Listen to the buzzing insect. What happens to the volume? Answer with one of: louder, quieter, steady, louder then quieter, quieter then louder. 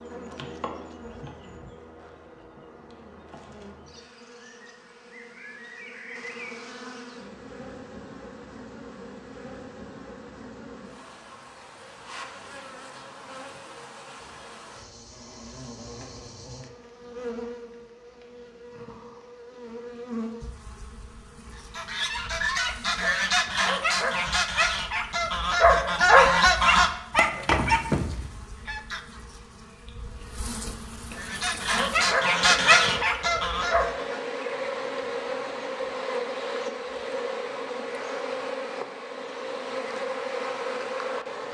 louder.